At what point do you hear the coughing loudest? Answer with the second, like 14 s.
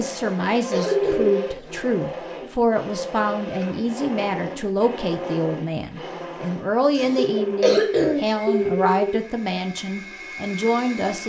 8 s.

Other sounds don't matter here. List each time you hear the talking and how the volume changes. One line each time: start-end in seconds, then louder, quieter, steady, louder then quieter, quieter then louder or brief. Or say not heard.
0.0-11.2 steady.